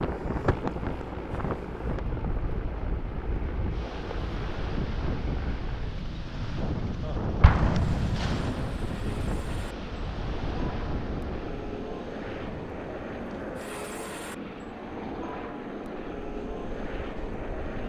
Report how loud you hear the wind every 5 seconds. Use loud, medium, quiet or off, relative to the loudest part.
loud, loud, medium, quiet.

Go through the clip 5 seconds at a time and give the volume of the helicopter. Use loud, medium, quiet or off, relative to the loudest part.
loud, medium, loud, loud.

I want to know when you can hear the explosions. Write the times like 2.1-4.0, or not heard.
7.4-8.4.